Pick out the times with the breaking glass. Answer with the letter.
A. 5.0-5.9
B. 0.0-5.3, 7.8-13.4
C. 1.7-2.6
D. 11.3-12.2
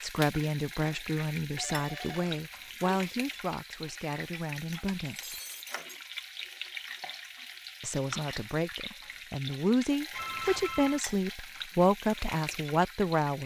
A.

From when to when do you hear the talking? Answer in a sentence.
The talking can be heard from 0.0 to 5.3 s and from 7.8 to 13.4 s.